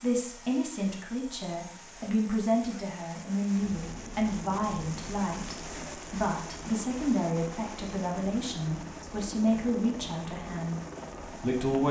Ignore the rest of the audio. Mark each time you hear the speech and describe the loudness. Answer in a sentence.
The speech can be heard from 0.0 to 10.8 s, at a steady volume; and briefly from 11.4 to 11.8 s.